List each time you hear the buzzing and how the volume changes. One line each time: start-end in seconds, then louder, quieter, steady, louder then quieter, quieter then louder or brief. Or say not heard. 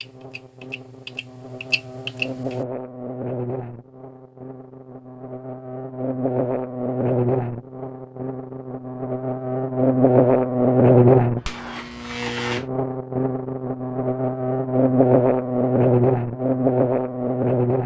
0.0-17.8 louder.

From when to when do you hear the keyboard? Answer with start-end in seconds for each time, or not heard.
0.0-2.6.